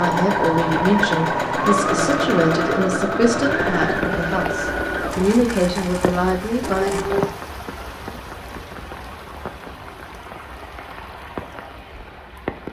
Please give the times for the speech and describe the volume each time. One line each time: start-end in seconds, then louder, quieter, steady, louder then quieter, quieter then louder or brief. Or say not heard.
0.0-7.2 steady.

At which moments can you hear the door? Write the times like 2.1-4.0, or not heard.
not heard.